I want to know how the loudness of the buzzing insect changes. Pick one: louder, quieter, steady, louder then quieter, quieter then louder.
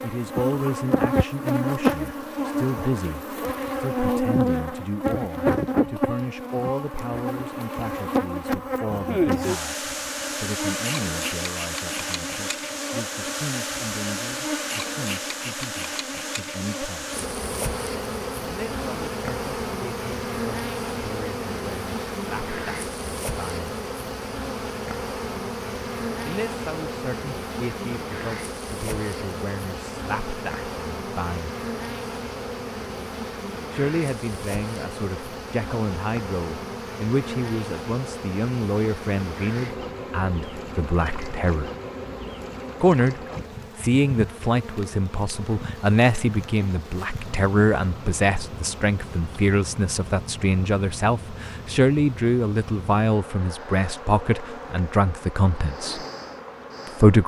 quieter.